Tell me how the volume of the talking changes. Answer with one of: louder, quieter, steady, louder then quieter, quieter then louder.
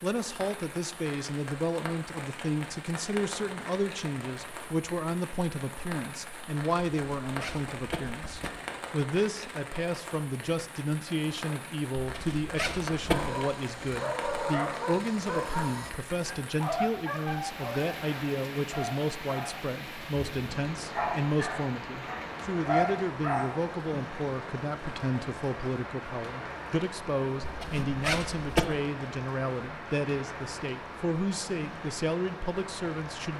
steady.